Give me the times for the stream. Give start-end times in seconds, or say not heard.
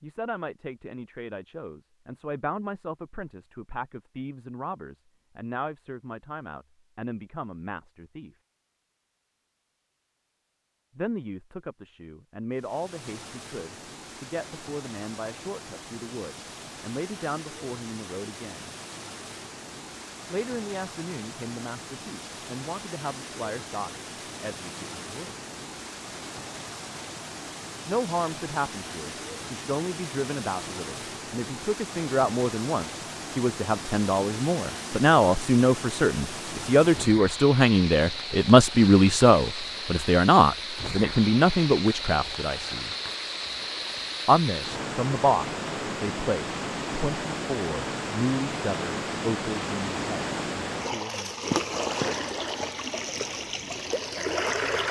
12.5-54.8.